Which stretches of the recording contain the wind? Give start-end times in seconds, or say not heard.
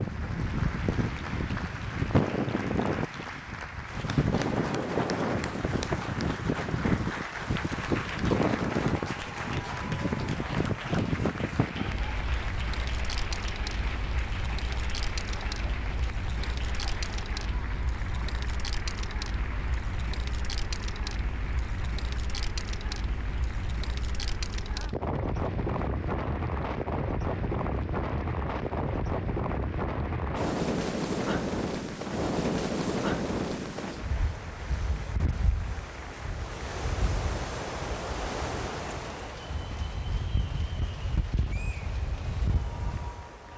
0.0-43.5.